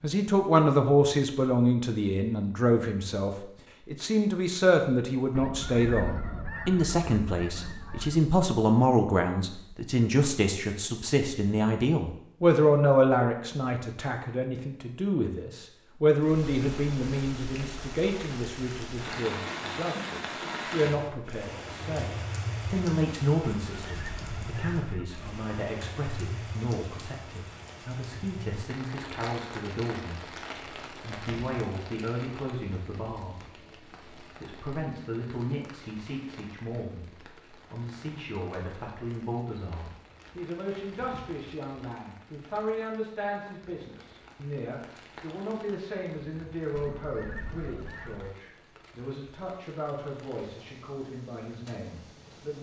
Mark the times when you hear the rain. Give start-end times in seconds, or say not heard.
16.2-52.5.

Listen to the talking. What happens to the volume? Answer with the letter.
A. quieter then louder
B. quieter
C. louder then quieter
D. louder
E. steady
B.